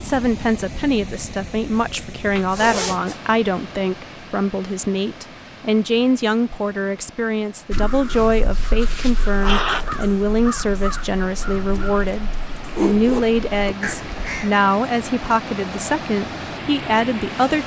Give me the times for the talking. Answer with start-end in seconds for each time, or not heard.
0.0-17.6.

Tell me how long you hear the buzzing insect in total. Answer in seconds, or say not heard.
not heard.